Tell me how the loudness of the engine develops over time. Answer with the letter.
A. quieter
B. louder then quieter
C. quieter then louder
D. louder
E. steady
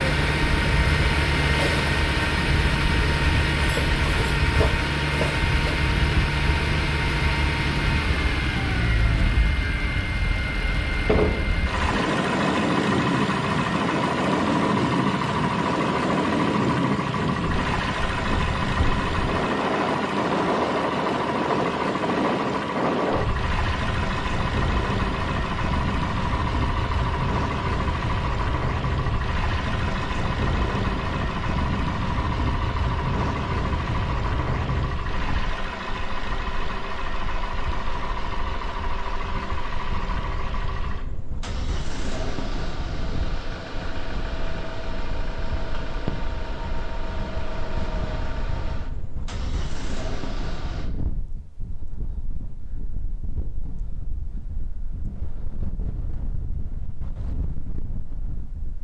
A.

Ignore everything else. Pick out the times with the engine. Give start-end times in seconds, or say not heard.
0.0-50.9.